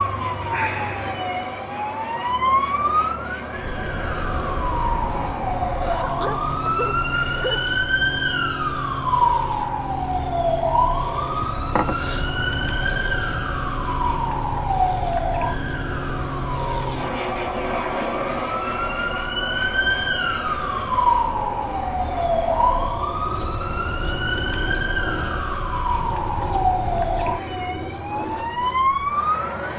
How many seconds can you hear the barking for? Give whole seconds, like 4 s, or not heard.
2 s.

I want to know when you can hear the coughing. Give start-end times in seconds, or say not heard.
11.4-12.3.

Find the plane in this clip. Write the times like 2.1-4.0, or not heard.
0.0-29.7.